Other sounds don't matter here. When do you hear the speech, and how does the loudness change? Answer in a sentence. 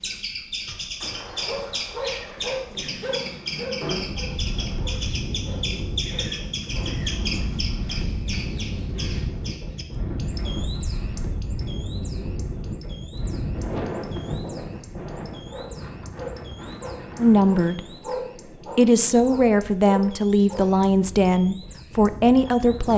You can hear the speech briefly from 17.1 to 17.8 s; and from 18.8 to 22.9 s, at a steady volume.